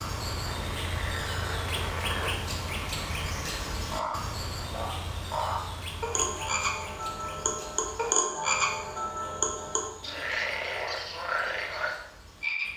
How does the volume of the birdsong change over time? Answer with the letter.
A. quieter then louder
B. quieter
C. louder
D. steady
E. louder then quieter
B.